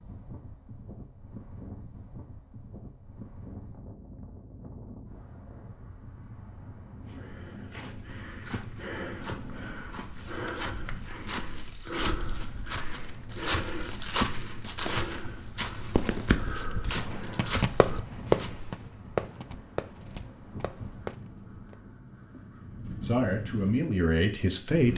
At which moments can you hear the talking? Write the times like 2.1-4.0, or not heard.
23.0-24.9.